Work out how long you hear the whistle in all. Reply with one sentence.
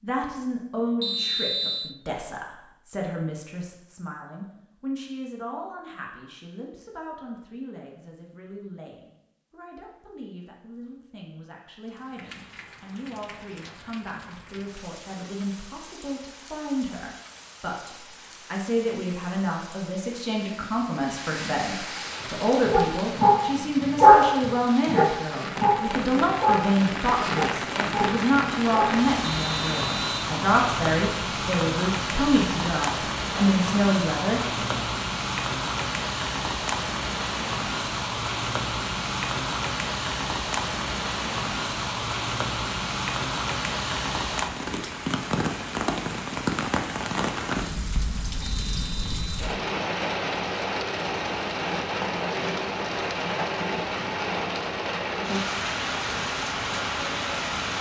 You can hear the whistle for 3 seconds altogether.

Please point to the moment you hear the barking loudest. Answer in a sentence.
The loudest moment of the barking is at 24 seconds.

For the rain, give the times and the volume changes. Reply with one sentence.
The rain can be heard from 11.8 to 57.7 s, getting louder.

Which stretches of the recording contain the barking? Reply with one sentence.
The barking can be heard from 21.9 to 29.2 s.